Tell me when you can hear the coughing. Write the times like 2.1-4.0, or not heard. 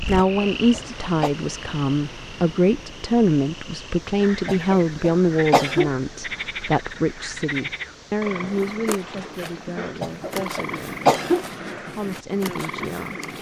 0.1-1.3, 4.5-5.9, 10.0-11.4.